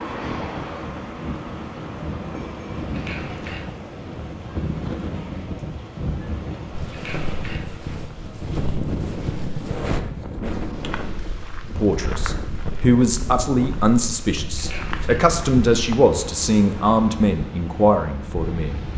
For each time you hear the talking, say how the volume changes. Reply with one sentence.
You can hear the talking from 11.8 to 18.8 s, at a steady volume.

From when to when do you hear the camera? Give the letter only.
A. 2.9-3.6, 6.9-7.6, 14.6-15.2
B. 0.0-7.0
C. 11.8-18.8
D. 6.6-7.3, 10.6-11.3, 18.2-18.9
A.